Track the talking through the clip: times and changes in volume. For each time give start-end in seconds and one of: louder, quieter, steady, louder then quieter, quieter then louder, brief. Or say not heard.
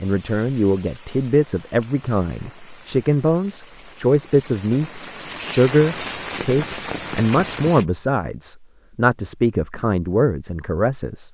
0.0-11.3 steady.